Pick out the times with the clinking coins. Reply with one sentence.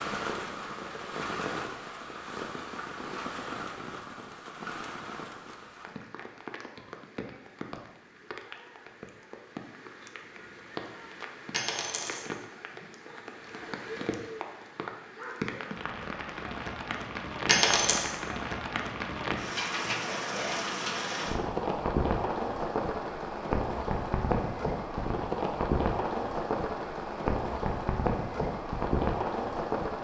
You can hear the clinking coins from 11.5 to 12.2 s and from 17.4 to 18.1 s.